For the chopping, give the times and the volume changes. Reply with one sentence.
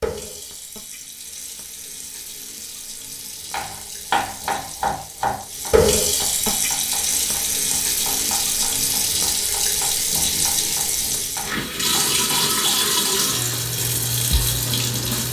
The chopping can be heard from 3.5 to 13.2 s, getting quieter.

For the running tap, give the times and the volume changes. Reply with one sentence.
The running tap can be heard from 0.0 to 15.2 s, getting louder.